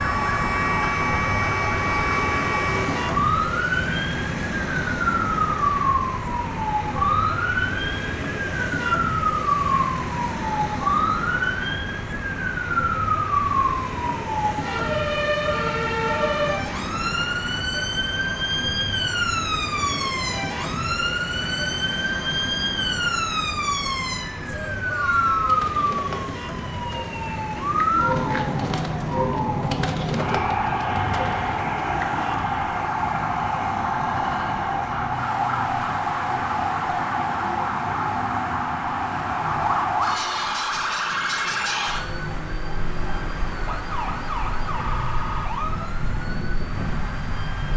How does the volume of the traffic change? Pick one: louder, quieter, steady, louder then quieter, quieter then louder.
quieter.